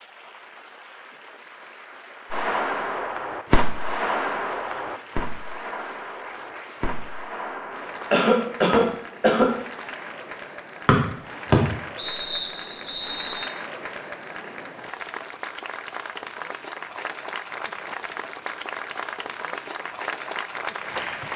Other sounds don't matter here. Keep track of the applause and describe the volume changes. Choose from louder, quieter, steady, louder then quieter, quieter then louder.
louder.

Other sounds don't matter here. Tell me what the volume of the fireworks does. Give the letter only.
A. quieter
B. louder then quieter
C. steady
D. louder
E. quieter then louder
A.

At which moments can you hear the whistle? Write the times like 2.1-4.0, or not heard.
10.8-13.4.